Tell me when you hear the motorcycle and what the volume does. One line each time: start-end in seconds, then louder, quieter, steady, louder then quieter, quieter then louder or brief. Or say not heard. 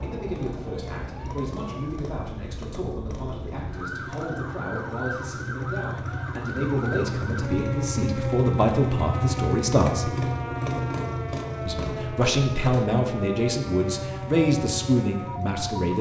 0.0-15.9 louder then quieter.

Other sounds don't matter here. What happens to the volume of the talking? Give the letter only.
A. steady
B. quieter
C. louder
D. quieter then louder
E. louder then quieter
C.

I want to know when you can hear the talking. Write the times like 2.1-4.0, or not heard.
0.0-10.2, 11.7-15.9.